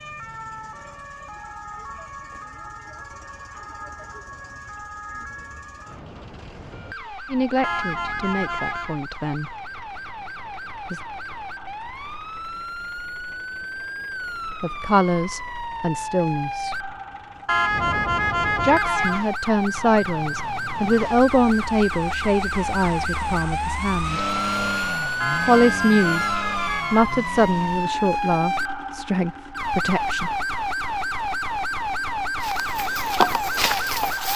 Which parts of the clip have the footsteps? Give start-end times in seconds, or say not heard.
32.4-34.3.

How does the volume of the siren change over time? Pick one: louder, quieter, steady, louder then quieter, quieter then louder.
louder.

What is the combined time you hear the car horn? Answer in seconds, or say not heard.
5 s.